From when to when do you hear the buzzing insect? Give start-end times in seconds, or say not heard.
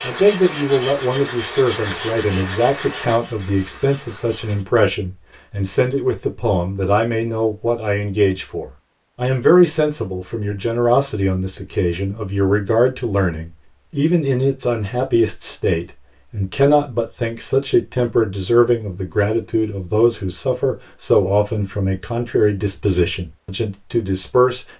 0.0-4.7.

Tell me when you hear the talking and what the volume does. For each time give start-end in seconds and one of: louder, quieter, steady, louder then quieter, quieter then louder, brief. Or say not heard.
0.0-24.6 steady.